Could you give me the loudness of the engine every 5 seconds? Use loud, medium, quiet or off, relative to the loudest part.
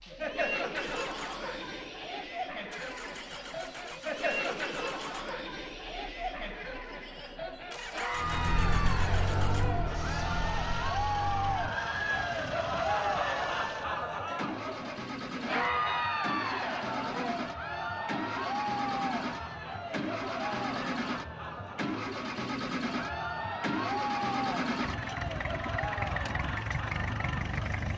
medium, medium, medium, loud, loud, loud.